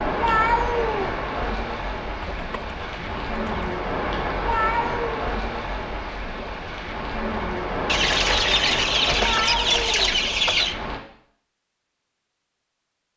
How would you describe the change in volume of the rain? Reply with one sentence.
The volume of the rain stays about the same.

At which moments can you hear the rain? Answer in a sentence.
You can hear the rain from 0.0 to 11.0 s.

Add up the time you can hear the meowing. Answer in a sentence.
The meowing can be heard for 3 seconds in total.